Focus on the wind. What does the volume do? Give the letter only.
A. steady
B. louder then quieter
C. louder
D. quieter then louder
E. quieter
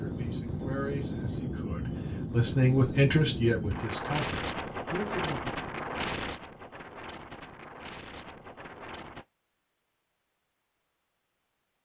E.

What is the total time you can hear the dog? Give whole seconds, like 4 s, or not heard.
not heard.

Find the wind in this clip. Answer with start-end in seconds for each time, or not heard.
0.0-9.2.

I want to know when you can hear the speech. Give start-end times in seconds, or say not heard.
0.0-5.5.